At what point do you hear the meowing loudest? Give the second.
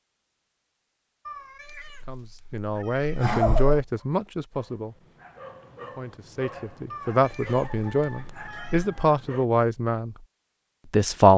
3 s.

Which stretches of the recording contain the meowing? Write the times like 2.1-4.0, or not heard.
1.2-3.9, 6.9-8.9.